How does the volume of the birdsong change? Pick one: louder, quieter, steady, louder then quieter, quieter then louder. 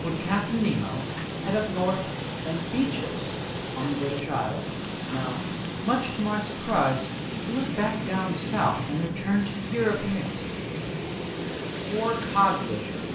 steady.